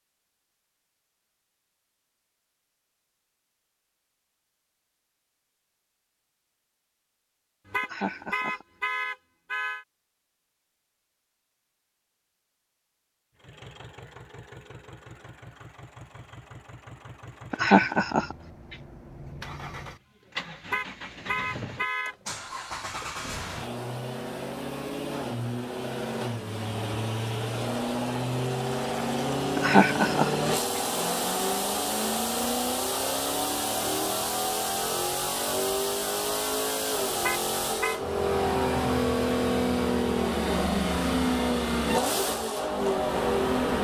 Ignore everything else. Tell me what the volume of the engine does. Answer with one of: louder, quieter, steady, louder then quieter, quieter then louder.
louder.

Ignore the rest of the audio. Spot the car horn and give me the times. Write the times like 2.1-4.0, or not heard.
7.7-9.8, 20.6-22.1, 37.1-38.0.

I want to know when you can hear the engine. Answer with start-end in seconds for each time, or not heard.
13.3-43.7.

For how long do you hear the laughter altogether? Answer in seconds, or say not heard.
4 s.